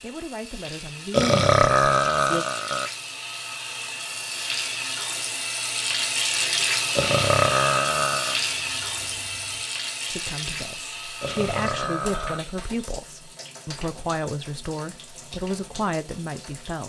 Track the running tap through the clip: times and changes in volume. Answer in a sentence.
You can hear the running tap from 0.0 to 16.8 s, getting louder then quieter.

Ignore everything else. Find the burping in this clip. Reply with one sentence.
You can hear the burping from 1.1 to 2.9 s, from 7.0 to 8.4 s and from 11.2 to 12.4 s.